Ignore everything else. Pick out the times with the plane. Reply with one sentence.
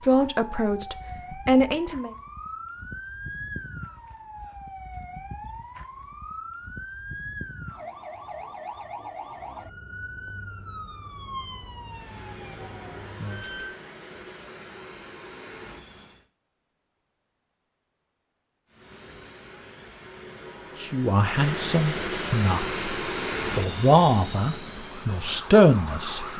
You can hear the plane from 11.8 to 16.2 s and from 18.6 to 26.3 s.